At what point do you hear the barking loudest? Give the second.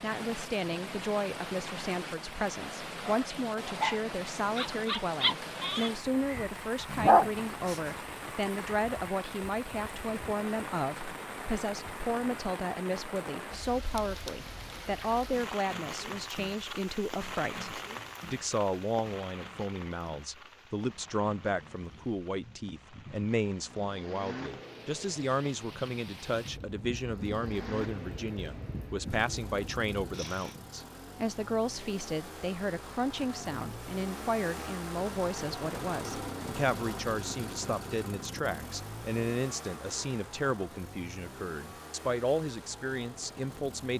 7 s.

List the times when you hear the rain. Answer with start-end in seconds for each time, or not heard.
0.0-30.6.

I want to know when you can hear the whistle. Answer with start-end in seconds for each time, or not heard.
not heard.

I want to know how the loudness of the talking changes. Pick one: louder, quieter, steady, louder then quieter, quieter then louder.
steady.